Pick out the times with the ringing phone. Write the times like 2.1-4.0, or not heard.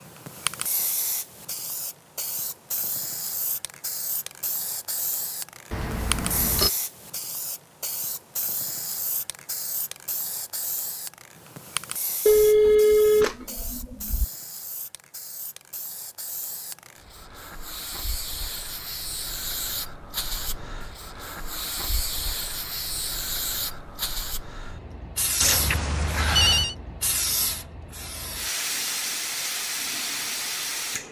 5.7-6.7, 12.2-14.2, 25.4-26.8.